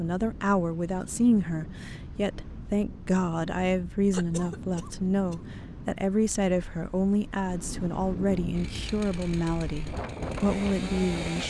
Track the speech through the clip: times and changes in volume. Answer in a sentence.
You can hear the speech from 0.0 to 11.4 s, at a steady volume.